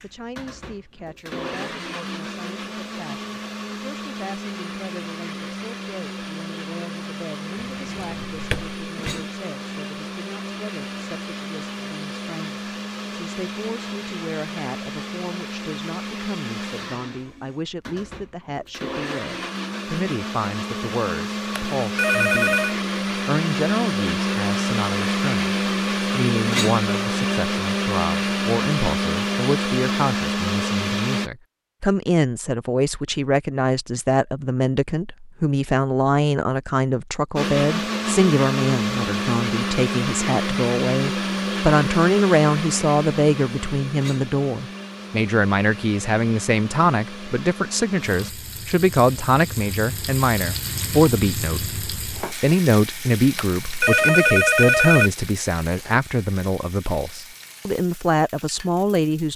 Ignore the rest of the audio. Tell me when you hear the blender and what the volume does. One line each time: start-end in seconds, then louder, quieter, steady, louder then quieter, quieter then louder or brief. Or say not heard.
0.0-31.3 louder
37.4-48.4 quieter.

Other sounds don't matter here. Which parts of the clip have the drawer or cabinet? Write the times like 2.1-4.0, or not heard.
7.5-9.2.